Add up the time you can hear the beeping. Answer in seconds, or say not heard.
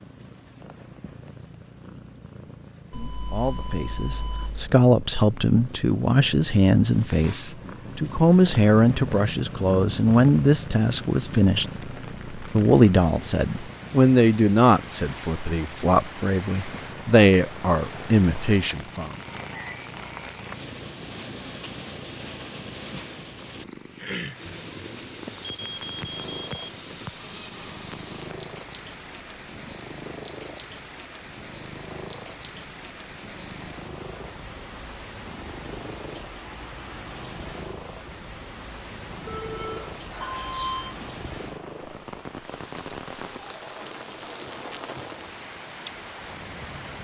5 s.